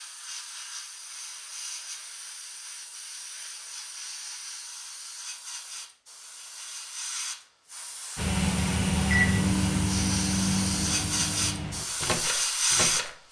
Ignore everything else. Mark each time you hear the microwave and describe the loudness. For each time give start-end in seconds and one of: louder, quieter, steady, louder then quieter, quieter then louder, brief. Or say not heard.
8.2-13.2 quieter.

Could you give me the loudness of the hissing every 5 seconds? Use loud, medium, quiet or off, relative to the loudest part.
quiet, medium, loud.